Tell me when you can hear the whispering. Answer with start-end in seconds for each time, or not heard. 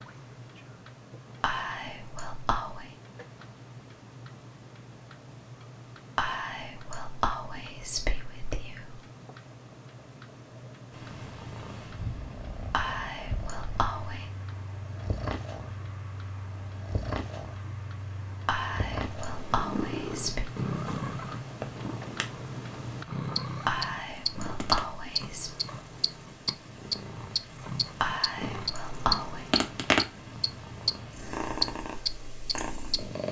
1.4-2.9, 6.2-9.0, 12.7-14.2, 18.4-20.4, 23.6-25.5, 28.0-29.4.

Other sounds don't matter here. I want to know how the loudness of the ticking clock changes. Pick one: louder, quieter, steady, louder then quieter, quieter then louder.
louder.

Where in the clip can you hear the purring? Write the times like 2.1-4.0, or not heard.
10.9-33.2.